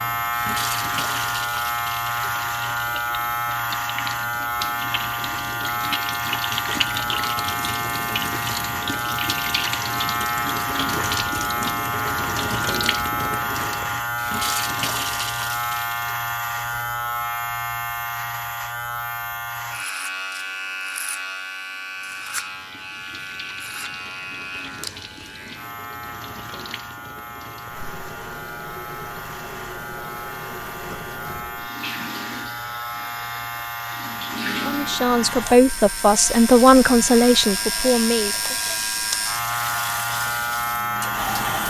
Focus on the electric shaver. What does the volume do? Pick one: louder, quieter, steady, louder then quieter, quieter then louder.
quieter then louder.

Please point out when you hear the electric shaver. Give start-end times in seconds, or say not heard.
0.0-41.6.